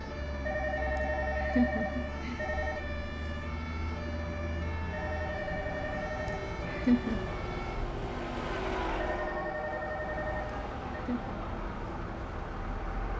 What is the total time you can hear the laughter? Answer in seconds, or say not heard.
2 s.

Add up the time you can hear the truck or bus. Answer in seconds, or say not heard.
13 s.